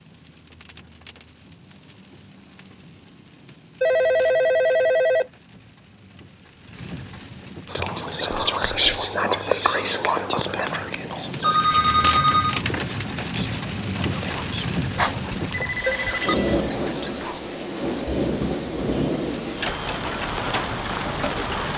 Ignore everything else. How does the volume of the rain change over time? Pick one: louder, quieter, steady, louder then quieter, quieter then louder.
louder.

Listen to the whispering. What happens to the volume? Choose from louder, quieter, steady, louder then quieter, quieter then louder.
quieter.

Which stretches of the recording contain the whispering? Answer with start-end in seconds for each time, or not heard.
7.7-17.4.